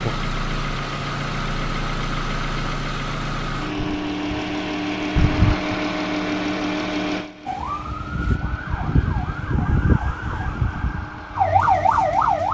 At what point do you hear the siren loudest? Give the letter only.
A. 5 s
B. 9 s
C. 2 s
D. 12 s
D.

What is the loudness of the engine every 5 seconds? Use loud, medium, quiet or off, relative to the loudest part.
loud, loud, quiet.